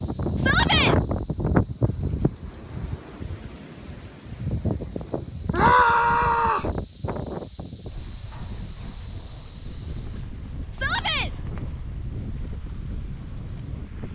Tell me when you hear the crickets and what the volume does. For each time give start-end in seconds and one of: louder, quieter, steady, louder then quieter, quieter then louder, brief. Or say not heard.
0.0-10.3 quieter then louder.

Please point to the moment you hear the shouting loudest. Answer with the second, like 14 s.
6 s.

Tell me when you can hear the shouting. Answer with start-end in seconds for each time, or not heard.
0.3-0.9, 5.5-6.7, 10.7-11.3.